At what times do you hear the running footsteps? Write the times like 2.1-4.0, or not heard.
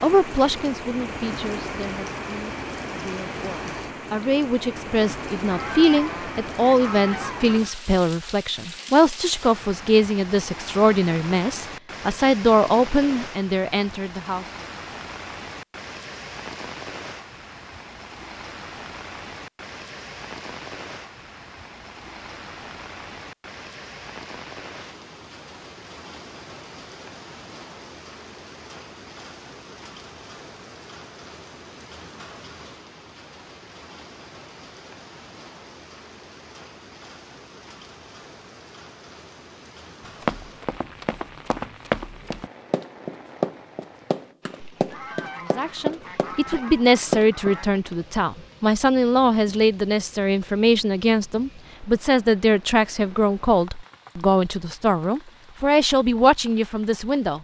40.0-47.5.